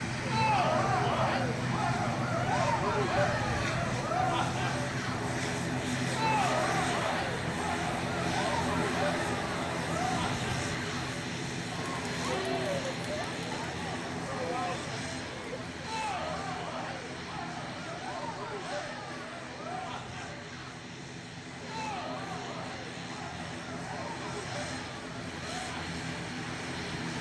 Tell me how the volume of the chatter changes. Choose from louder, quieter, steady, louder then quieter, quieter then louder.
quieter.